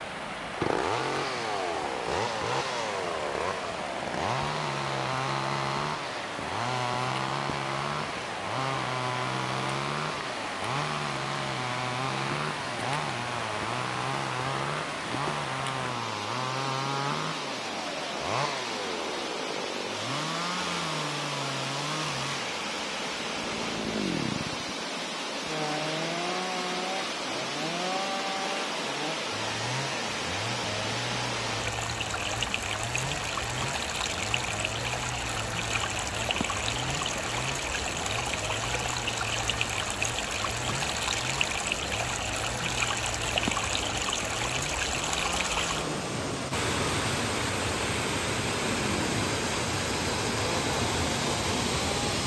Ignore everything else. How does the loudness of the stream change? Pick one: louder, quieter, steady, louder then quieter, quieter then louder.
louder.